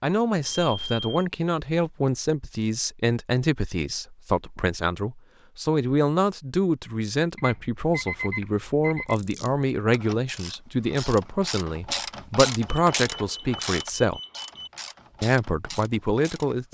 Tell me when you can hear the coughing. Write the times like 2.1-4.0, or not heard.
not heard.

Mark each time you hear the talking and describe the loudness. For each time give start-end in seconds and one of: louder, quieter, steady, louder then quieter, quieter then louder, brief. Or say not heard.
0.0-14.2 steady
15.2-16.6 brief.